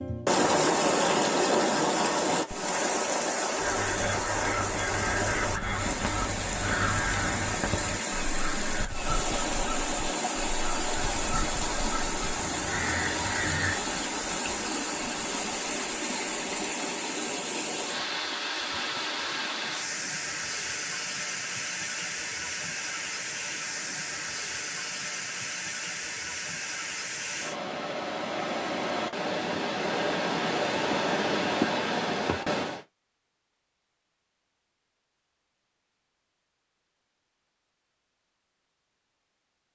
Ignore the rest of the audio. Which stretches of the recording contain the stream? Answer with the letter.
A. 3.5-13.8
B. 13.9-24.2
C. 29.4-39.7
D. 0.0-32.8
D.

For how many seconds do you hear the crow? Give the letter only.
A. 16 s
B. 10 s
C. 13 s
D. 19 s
B.